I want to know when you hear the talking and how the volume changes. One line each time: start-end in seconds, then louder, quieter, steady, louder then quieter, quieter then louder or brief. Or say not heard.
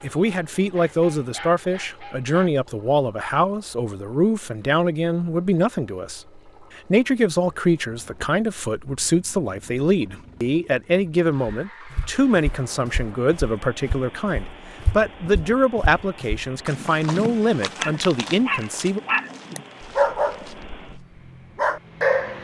0.0-19.0 steady.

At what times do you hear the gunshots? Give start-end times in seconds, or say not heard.
not heard.